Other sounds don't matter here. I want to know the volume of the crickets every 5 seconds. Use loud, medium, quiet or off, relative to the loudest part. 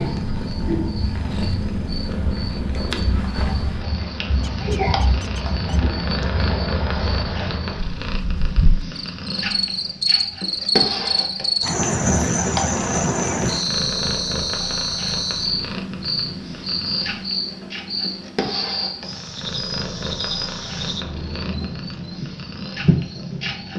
medium, medium, loud, medium, medium.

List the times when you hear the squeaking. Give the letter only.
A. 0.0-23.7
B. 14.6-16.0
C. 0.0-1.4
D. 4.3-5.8
D.